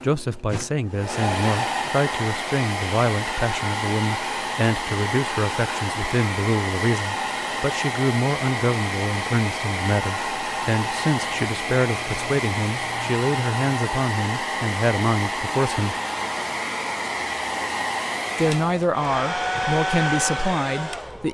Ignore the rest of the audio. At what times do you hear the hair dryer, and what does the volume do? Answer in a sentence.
The hair dryer can be heard from 0.0 to 21.2 s, at a steady volume.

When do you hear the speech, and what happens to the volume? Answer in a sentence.
You can hear the speech from 0.0 to 15.9 s, at a steady volume; and briefly from 18.4 to 21.2 s.